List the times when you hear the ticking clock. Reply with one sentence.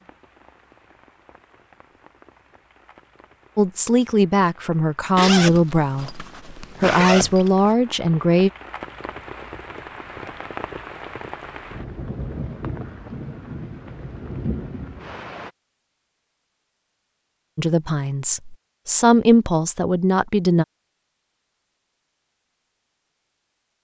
The ticking clock can't be heard in this clip.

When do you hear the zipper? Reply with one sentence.
You can hear the zipper from 5.2 to 7.7 s.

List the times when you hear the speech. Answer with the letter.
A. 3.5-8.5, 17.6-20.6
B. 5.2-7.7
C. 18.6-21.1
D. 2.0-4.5
A.